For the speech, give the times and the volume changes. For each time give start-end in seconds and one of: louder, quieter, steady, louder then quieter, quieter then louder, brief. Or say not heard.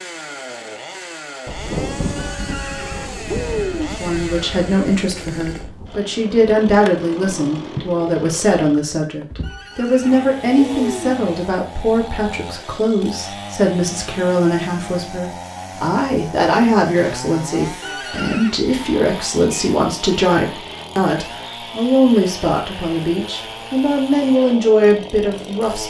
3.9-25.8 steady.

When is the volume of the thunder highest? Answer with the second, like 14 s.
2 s.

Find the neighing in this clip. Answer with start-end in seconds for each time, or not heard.
2.1-4.0, 9.4-11.2, 17.8-18.6.